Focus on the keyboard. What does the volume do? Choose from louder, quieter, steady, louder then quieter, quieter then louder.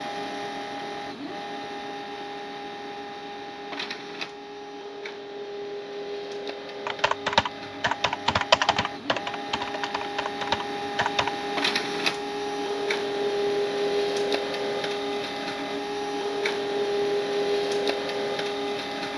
quieter then louder.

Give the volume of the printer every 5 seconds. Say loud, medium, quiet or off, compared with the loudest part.
medium, medium, loud, loud.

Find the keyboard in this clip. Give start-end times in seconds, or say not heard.
6.8-11.3.